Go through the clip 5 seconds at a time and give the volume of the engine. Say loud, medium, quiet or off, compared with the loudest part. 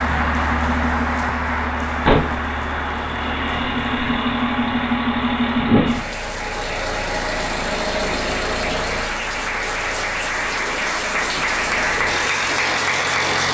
loud, loud, medium.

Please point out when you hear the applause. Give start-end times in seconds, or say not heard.
0.0-13.5.